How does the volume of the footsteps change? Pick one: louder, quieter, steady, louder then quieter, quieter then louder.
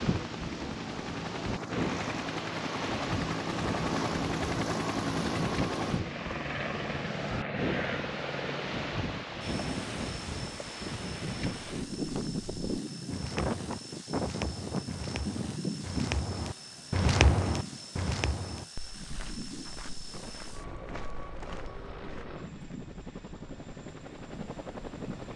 louder then quieter.